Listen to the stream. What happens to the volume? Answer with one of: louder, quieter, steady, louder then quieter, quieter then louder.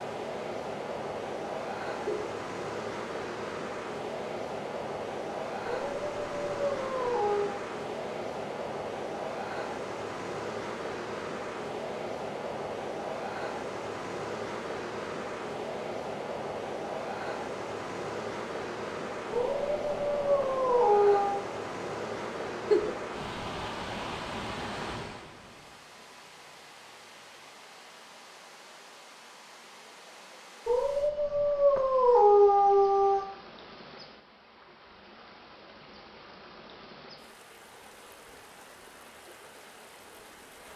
quieter.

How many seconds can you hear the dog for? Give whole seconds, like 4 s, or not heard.
7 s.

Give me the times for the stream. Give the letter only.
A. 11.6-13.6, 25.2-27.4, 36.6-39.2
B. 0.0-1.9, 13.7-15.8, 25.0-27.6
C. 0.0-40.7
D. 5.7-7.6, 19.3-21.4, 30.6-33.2
C.